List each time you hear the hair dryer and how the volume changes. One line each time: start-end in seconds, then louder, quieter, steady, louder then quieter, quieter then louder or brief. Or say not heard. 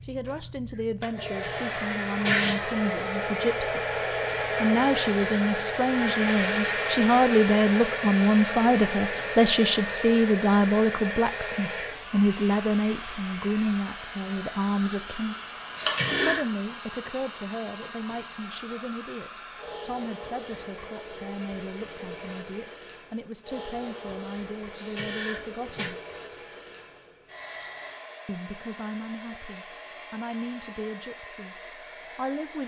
0.0-32.6 quieter.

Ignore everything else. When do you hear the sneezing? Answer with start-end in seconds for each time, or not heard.
1.2-2.6, 15.8-16.4, 24.8-25.9.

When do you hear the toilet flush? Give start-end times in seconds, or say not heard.
15.6-16.4.